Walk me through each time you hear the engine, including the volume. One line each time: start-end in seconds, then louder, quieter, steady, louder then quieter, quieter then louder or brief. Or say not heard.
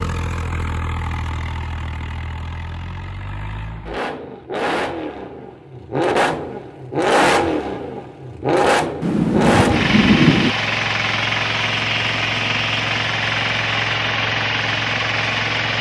0.0-15.7 louder.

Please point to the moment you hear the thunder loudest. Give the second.
10 s.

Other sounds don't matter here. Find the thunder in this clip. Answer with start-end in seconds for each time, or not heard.
9.0-10.6.